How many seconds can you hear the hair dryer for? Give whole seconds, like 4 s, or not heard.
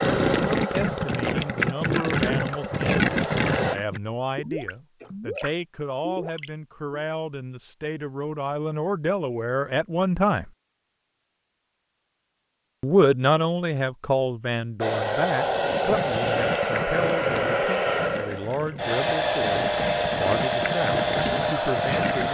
11 s.